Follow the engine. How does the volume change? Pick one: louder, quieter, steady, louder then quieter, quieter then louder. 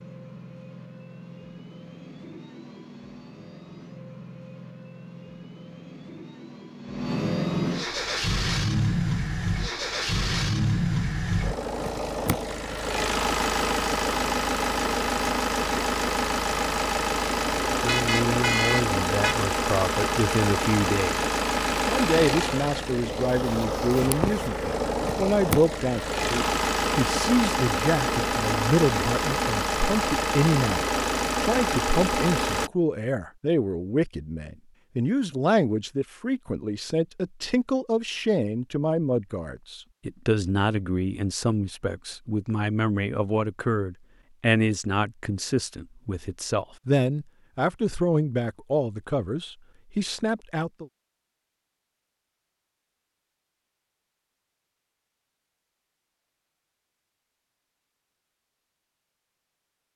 louder.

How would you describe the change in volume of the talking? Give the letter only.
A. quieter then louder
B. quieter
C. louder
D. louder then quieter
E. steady
E.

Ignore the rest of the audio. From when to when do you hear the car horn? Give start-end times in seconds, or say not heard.
17.9-19.4.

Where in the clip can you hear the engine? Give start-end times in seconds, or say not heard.
0.0-32.7.